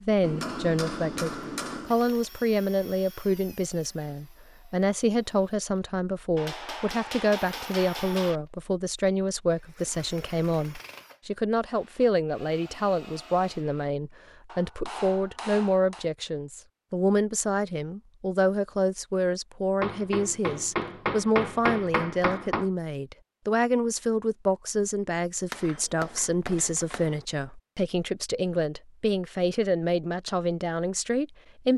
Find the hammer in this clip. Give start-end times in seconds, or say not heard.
0.2-1.9, 6.3-8.4, 14.4-16.1, 19.8-22.7, 25.5-27.2.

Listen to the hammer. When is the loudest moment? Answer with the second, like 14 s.
22 s.